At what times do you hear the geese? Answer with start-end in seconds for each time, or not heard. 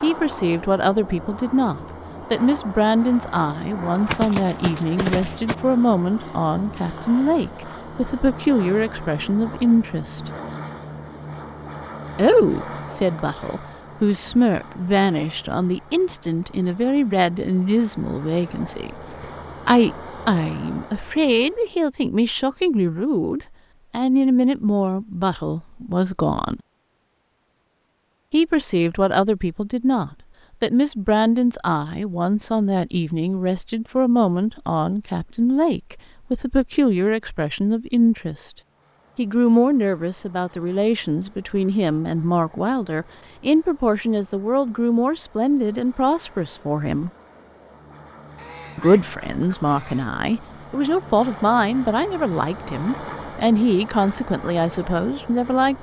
4.0-5.5, 48.4-50.1.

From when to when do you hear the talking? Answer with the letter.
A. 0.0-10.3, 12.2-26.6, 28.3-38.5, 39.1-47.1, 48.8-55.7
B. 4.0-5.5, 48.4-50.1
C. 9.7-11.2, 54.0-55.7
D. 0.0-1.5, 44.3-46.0
A.